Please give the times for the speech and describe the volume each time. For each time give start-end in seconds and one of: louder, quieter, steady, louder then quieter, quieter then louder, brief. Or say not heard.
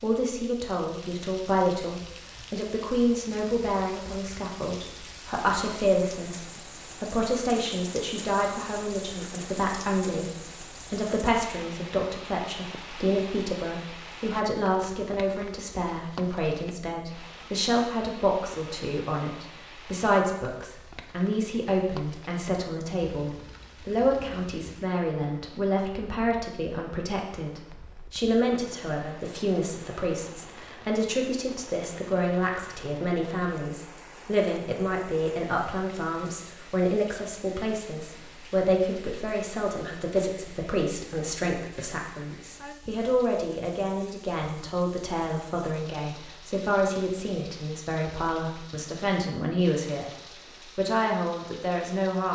0.0-50.1 steady
50.8-52.3 brief.